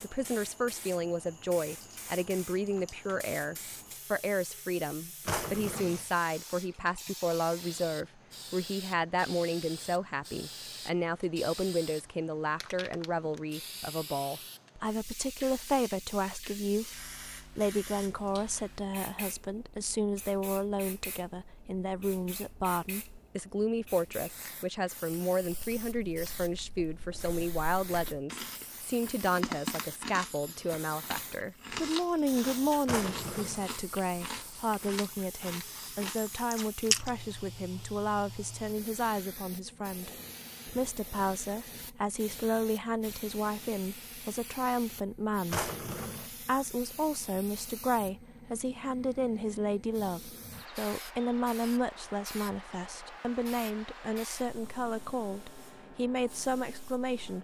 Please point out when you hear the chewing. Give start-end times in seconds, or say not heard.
25.4-37.1.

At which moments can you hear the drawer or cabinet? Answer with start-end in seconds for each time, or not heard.
5.2-6.0, 32.9-33.6, 45.5-46.3.